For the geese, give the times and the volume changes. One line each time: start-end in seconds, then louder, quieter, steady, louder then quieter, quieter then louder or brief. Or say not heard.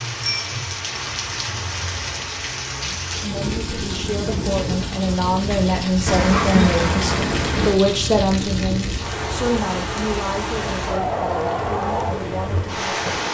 not heard.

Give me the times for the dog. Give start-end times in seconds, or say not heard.
6.0-7.8.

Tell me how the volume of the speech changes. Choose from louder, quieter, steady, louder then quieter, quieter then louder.
louder then quieter.